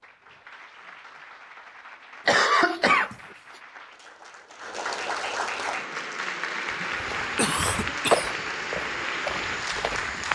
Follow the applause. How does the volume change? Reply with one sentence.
The volume of the applause goes up.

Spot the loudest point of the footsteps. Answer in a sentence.
The loudest moment of the footsteps is at 8 seconds.